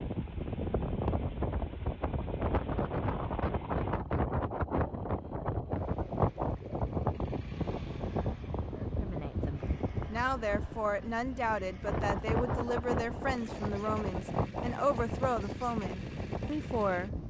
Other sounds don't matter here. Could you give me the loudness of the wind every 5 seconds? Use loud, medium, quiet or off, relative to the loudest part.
loud, loud, loud, medium.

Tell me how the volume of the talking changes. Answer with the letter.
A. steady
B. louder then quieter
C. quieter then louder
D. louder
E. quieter
A.